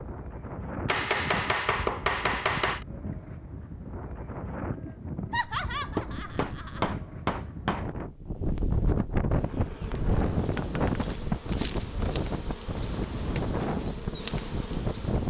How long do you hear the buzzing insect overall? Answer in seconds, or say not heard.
6 s.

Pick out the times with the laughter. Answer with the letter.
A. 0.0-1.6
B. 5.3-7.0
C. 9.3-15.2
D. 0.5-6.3
B.